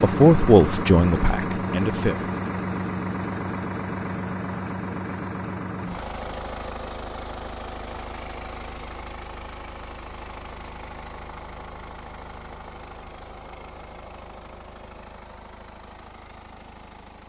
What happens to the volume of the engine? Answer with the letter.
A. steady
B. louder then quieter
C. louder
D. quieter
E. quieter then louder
D.